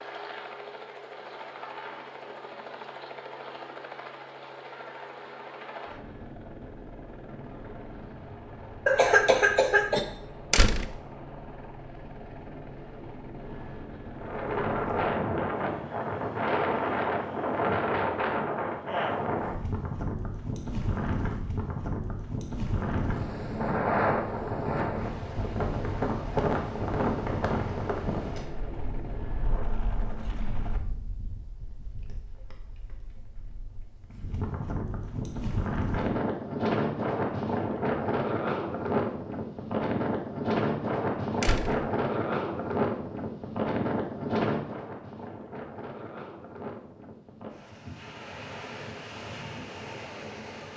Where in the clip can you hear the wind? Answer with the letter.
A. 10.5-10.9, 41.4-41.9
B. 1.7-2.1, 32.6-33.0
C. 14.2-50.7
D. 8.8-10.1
C.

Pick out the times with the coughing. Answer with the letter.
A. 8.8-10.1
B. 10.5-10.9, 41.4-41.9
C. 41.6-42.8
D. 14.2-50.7
A.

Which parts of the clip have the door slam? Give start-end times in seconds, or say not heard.
10.5-10.9, 41.4-41.9.